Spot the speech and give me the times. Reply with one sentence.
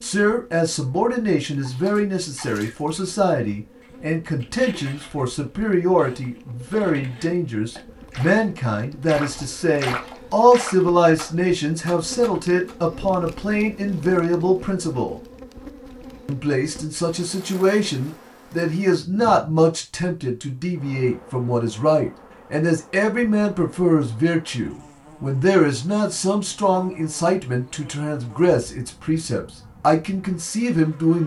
The speech can be heard from 0.0 to 15.2 s and from 16.2 to 31.2 s.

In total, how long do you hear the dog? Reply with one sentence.
You can't hear the dog here.